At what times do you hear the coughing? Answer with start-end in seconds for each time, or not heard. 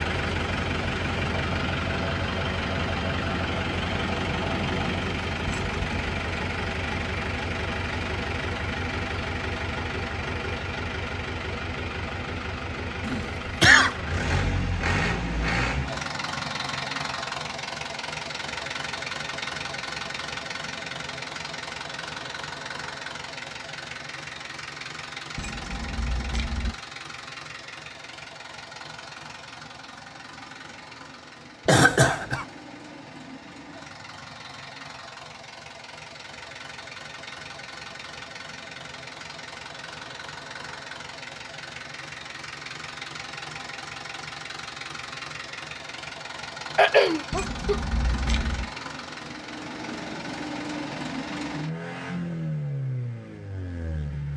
13.1-13.9, 31.6-32.5, 46.8-47.8.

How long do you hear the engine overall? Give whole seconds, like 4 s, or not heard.
54 s.